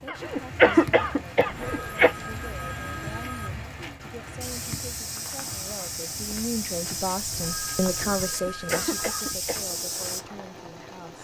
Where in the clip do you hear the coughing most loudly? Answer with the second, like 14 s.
1 s.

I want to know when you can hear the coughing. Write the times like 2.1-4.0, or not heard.
0.1-2.1, 8.2-9.6.